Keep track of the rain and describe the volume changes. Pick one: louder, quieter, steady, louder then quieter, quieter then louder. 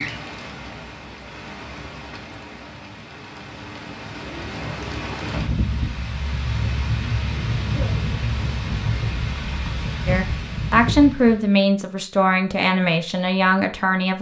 louder.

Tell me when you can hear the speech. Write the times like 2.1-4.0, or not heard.
10.1-14.1.